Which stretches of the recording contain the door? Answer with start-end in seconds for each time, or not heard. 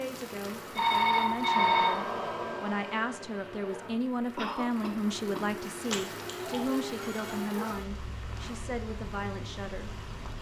not heard.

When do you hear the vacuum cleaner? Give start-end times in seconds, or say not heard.
1.5-3.9.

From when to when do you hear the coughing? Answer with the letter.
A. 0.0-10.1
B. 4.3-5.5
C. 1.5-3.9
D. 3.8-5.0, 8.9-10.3
B.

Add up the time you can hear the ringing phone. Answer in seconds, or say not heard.
3 s.